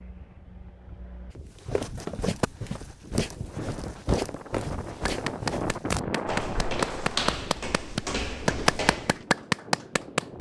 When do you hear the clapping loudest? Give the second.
9 s.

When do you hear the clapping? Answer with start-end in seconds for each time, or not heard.
5.0-10.3.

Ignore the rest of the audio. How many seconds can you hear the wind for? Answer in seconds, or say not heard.
10 s.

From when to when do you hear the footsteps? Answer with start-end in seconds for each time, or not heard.
1.6-9.2.